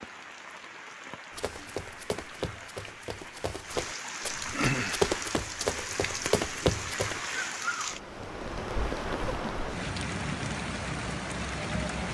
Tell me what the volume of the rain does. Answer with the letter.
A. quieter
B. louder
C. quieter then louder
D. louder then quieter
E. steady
B.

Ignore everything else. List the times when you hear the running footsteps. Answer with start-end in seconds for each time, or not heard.
1.4-7.2.